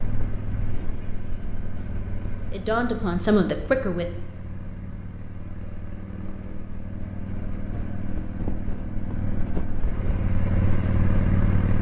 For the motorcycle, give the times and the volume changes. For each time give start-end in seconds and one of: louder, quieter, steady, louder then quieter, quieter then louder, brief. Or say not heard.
0.0-11.7 louder.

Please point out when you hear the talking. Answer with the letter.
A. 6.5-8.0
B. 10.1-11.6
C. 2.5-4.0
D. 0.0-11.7
C.